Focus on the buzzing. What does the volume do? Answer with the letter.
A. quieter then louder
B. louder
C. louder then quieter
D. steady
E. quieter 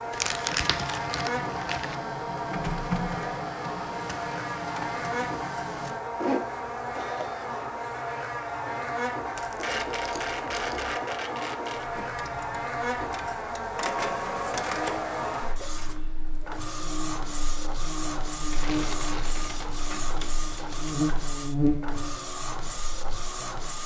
D.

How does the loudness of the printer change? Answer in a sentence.
The volume of the printer stays about the same.